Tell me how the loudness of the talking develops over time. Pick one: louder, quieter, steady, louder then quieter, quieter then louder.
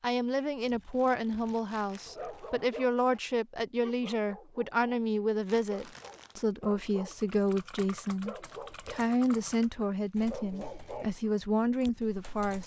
steady.